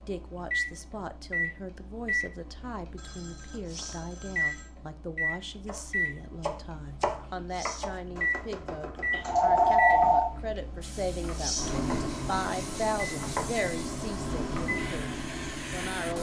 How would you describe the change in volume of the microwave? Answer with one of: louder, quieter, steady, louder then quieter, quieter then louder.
steady.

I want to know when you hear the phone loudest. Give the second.
10 s.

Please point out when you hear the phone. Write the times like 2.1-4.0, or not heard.
3.0-4.7, 9.1-10.3.